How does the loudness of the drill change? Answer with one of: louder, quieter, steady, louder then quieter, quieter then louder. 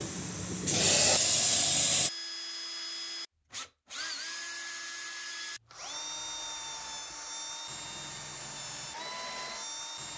steady.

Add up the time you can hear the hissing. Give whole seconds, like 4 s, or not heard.
2 s.